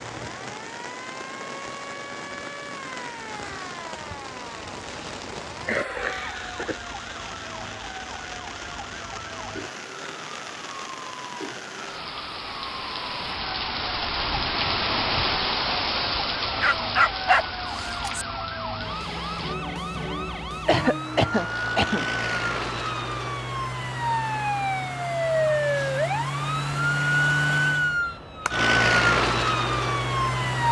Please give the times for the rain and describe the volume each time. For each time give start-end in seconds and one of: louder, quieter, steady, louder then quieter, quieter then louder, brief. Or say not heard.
0.0-19.6 louder.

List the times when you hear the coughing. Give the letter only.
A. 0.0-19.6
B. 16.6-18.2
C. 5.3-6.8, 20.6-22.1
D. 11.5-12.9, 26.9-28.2
C.